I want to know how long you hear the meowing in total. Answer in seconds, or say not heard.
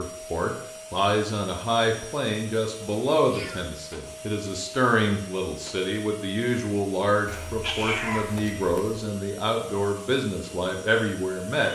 2 s.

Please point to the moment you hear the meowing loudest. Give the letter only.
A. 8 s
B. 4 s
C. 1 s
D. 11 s
A.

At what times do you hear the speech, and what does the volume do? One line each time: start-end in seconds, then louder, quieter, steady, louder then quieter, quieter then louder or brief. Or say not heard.
0.0-11.7 steady.